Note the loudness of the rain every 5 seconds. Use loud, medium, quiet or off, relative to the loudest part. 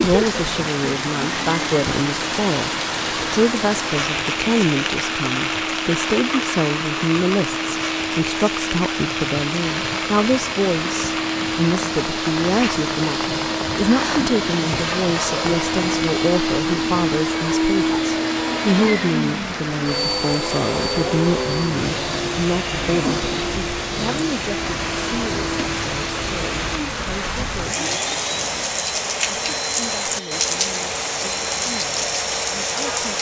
loud, loud, medium, medium, medium, loud, loud.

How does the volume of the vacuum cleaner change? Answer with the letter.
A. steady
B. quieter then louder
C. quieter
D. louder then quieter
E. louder
D.